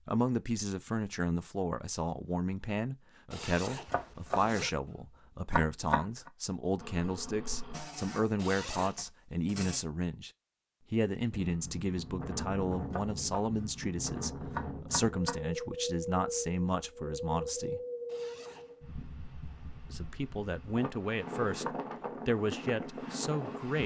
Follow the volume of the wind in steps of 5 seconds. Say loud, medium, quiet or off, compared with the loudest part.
off, off, loud, loud, loud.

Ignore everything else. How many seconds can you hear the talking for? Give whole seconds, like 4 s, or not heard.
21 s.